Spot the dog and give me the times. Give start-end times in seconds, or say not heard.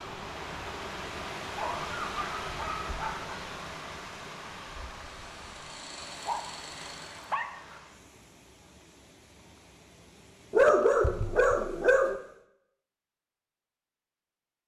1.6-3.4, 6.0-7.8, 10.5-12.2.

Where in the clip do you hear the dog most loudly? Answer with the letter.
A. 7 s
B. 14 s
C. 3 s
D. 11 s
D.